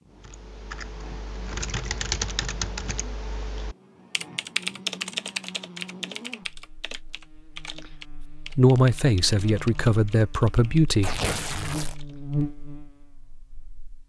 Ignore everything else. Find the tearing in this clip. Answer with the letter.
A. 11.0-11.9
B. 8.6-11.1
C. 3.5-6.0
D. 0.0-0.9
A.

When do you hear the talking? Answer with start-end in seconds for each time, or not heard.
8.6-11.1.